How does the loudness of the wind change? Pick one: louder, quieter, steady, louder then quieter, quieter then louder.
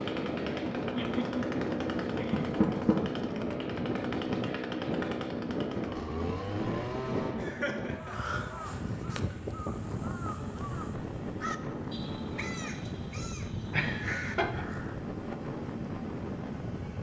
steady.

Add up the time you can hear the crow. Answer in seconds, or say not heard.
7 s.